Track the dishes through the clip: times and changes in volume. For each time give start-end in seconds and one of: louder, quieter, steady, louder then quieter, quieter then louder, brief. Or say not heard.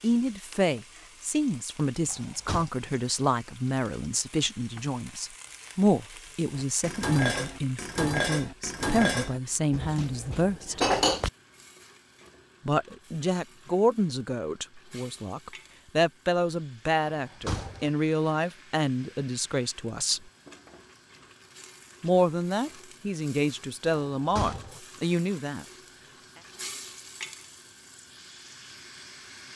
6.5-11.3 quieter then louder.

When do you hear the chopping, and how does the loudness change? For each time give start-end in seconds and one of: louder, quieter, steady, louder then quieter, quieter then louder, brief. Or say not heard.
not heard.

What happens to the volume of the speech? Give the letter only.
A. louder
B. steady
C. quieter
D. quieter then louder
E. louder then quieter
B.